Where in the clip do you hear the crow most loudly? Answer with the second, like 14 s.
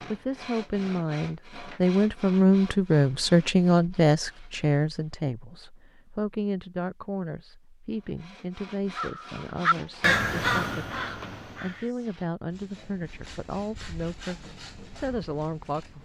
10 s.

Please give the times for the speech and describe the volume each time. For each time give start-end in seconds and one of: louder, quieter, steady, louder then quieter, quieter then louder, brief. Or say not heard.
0.0-16.0 quieter.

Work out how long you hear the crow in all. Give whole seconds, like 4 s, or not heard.
3 s.